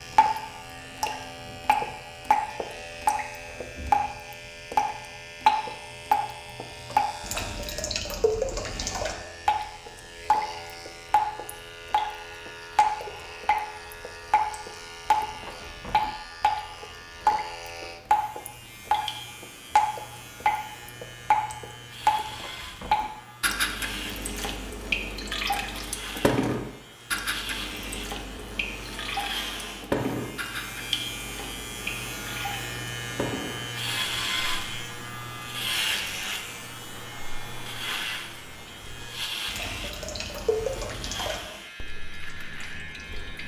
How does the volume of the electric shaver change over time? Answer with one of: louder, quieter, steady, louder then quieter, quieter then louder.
louder.